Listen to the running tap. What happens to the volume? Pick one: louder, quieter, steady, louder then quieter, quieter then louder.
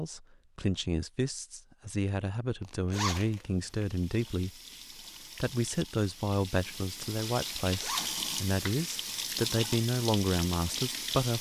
louder.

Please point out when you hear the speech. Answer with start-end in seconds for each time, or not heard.
0.0-4.6, 5.4-11.3.